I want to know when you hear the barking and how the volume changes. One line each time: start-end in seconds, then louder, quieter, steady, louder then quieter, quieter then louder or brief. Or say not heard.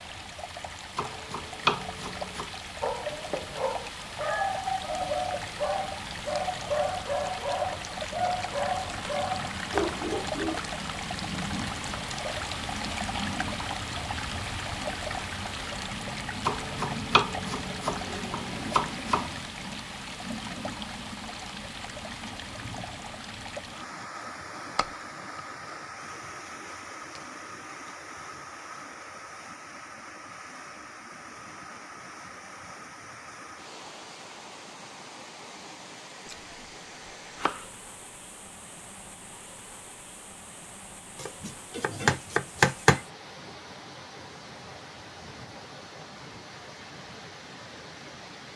2.8-10.6 steady.